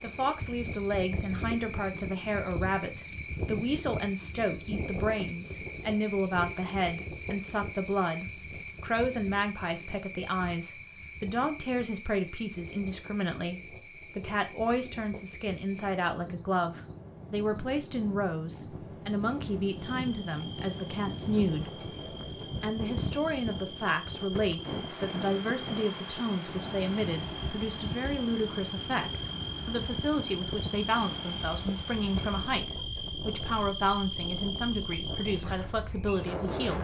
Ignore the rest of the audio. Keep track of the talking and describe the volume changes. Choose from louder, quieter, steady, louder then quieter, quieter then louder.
steady.